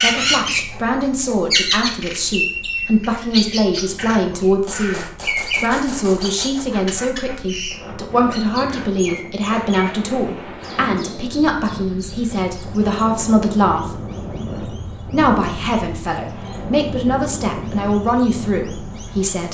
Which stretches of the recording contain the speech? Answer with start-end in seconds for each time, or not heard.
0.0-14.0, 15.1-19.4.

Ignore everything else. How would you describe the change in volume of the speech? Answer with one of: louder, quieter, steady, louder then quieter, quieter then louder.
steady.